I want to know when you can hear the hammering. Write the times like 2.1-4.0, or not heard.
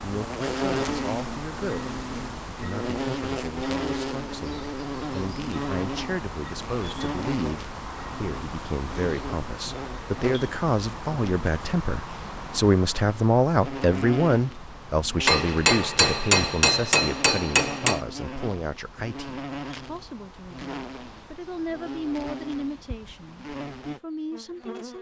15.2-18.0.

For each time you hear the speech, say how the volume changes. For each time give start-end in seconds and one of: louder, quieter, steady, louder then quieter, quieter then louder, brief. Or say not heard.
0.0-24.9 louder then quieter.